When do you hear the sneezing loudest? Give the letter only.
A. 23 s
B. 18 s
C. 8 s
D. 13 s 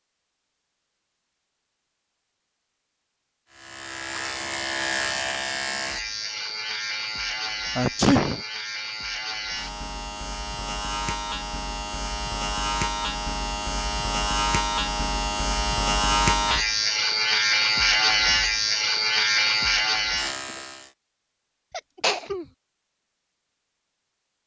C.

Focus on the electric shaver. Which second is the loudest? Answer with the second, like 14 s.
18 s.